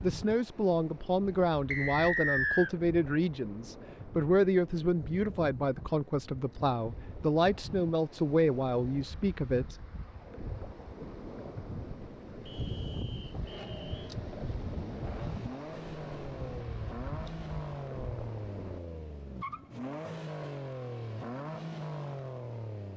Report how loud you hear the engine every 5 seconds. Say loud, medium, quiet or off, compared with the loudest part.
off, off, medium, loud, loud.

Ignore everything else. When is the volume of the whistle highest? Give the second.
2 s.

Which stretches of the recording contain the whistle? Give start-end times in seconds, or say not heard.
1.7-2.7, 12.4-14.2.